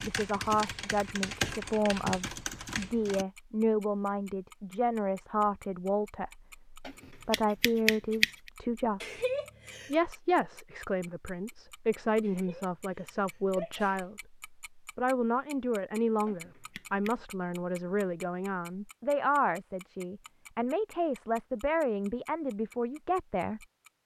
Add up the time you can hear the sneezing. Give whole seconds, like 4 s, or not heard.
3 s.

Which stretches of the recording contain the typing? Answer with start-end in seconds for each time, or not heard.
0.0-3.2.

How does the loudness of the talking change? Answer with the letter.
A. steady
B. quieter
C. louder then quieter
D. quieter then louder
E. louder
A.